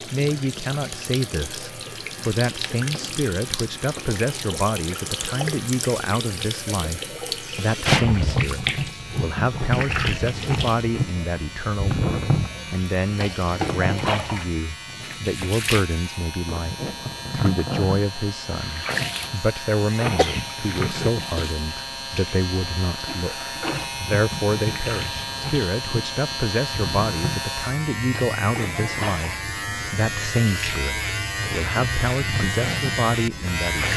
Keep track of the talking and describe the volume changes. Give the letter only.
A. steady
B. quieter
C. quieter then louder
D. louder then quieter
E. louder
A.